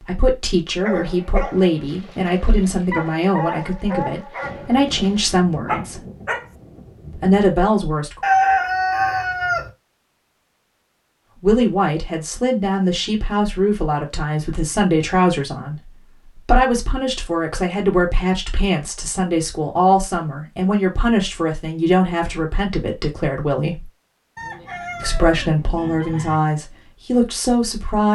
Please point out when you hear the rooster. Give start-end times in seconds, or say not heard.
8.2-9.7, 24.4-26.4.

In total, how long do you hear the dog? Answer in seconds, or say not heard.
6 s.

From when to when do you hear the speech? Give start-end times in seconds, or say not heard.
0.0-6.0, 7.2-8.2, 11.4-23.9, 25.0-28.1.